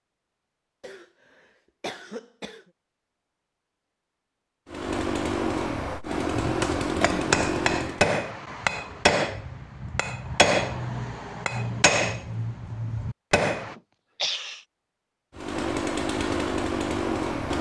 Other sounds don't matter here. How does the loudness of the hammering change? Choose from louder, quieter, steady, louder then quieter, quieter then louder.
quieter.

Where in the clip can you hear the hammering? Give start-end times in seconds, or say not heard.
6.3-13.8.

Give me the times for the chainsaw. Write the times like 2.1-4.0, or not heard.
4.7-8.0, 15.3-17.5.